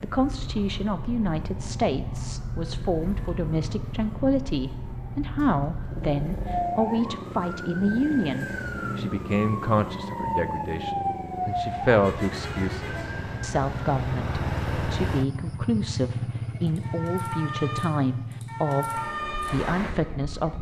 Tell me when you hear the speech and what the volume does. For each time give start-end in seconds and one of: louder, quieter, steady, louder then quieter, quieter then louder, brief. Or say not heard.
0.0-20.5 steady.